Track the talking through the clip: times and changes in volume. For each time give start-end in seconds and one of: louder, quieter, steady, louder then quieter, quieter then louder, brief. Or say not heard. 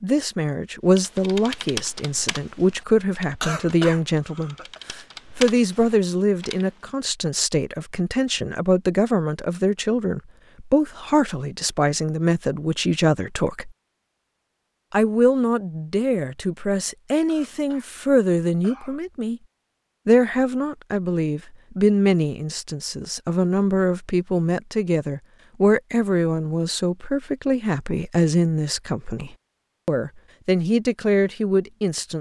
0.0-13.7 steady
14.9-19.4 steady
20.1-32.1 steady.